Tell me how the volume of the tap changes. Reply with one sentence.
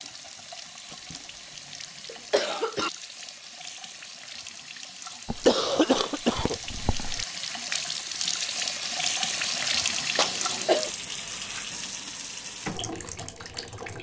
The volume of the tap goes up, then down.